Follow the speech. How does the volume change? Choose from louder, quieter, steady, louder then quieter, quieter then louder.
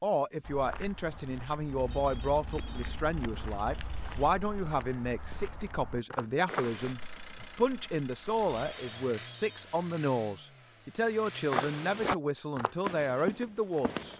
steady.